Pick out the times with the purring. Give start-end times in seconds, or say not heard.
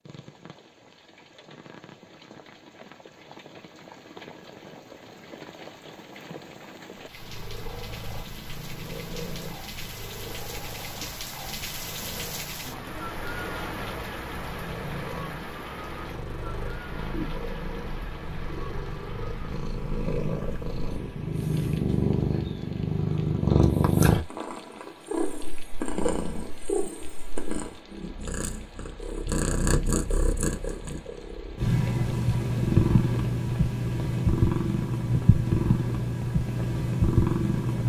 7.0-37.8.